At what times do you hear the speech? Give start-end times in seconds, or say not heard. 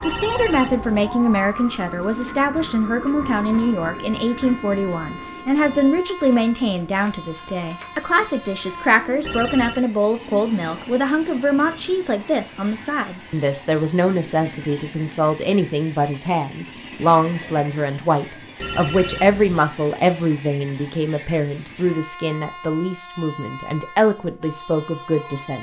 0.0-25.5.